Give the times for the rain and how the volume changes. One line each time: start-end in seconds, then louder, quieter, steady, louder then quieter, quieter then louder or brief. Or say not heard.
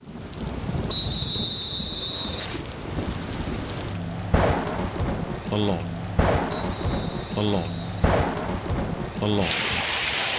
0.0-10.3 louder.